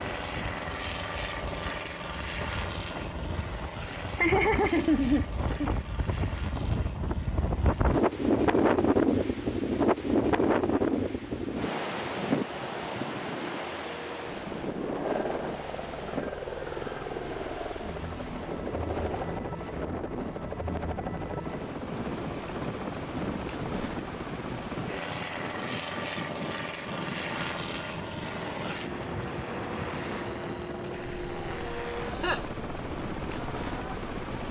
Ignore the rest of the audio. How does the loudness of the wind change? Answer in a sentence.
The loudness of the wind goes up, then down.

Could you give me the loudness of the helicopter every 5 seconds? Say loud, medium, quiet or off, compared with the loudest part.
loud, medium, medium, loud, loud, loud, loud.